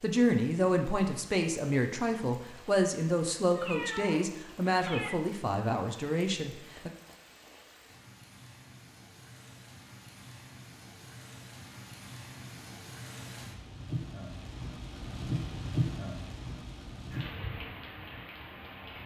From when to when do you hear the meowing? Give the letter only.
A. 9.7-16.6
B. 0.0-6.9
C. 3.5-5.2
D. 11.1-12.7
C.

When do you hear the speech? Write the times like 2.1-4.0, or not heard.
0.0-6.9.